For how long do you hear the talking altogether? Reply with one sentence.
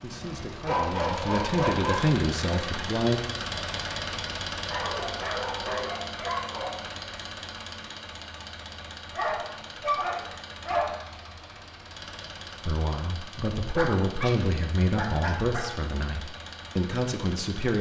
The talking can be heard for 8 seconds in total.